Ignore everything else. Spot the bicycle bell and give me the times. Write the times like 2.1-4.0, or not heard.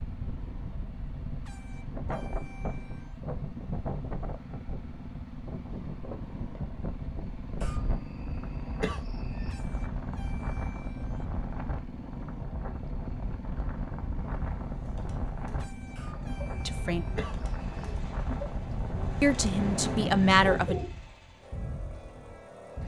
not heard.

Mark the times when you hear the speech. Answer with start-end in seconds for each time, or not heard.
16.6-17.1, 19.2-20.8.